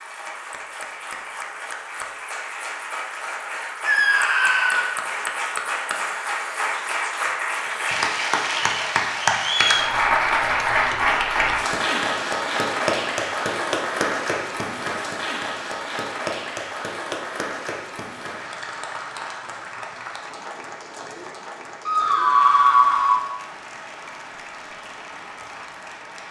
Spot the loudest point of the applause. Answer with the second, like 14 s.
10 s.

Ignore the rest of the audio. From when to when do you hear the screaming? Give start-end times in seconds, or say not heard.
3.9-4.9, 21.9-23.2.